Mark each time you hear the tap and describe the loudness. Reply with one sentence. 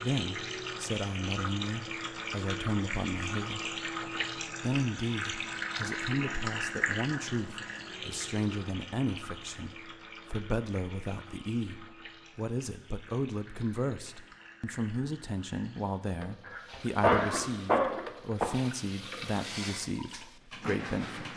The tap can be heard from 0.0 to 21.3 s, getting quieter then louder.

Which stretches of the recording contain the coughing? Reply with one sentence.
You can hear the coughing from 16.4 to 18.4 s.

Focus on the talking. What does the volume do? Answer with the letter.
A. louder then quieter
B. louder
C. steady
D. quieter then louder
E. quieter
C.